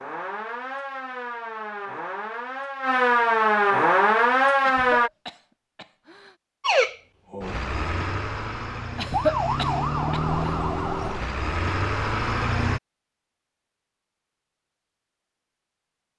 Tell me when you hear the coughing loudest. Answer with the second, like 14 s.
9 s.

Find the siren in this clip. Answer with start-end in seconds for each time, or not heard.
0.0-5.1, 6.6-12.8.